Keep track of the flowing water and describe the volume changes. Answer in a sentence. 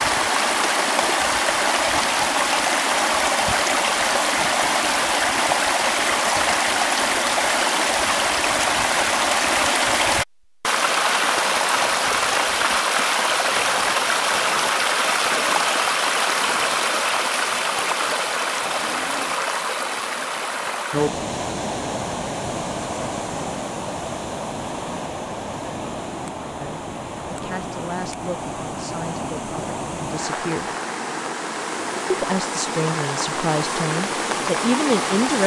The loudness of the flowing water goes down.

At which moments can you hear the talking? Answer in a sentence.
You can hear the talking from 26.6 to 30.7 s and from 32.1 to 35.4 s.